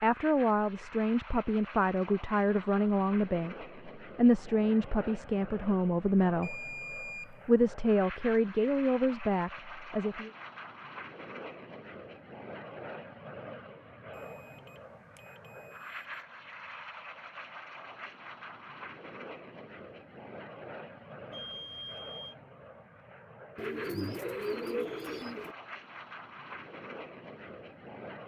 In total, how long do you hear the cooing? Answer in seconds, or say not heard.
2 s.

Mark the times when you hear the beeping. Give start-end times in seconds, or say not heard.
6.4-7.4, 14.1-16.0, 21.3-22.4.